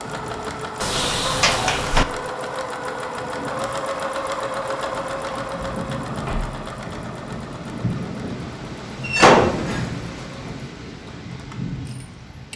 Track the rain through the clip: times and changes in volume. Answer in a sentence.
You can hear the rain from 0.0 to 12.5 s, getting louder.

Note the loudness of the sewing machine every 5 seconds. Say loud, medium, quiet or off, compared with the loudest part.
loud, medium, quiet.